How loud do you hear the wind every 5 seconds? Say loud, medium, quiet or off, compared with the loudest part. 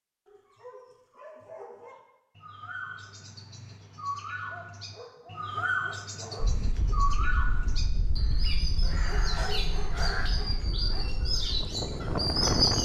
off, medium, loud.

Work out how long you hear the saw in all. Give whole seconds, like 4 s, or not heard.
not heard.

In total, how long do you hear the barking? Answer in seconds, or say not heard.
6 s.